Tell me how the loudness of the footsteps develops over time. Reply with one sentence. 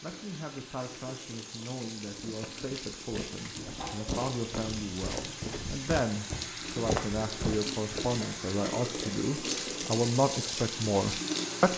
The loudness of the footsteps goes up.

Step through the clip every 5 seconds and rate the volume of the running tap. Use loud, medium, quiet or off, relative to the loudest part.
medium, loud, loud.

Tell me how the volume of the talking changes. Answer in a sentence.
The volume of the talking goes up.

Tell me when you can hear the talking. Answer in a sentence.
You can hear the talking from 0.0 to 11.7 s.